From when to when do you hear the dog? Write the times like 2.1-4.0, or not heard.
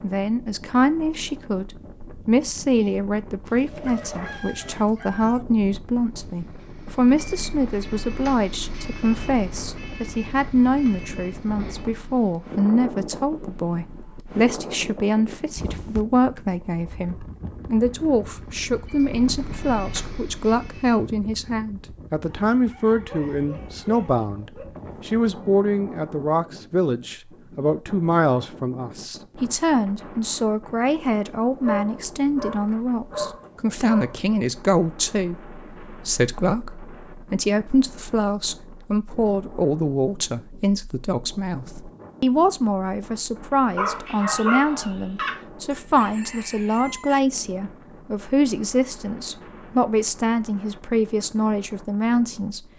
3.5-4.8, 22.9-24.6, 31.6-34.2, 43.8-45.4.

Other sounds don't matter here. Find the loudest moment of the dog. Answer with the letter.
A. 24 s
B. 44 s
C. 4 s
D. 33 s
B.